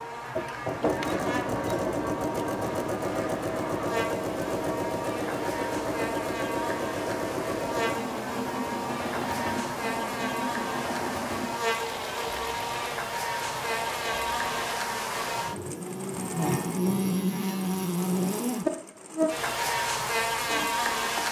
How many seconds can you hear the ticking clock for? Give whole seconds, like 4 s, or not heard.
not heard.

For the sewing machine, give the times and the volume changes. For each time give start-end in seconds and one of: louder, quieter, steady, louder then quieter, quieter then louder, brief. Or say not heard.
0.0-21.2 quieter.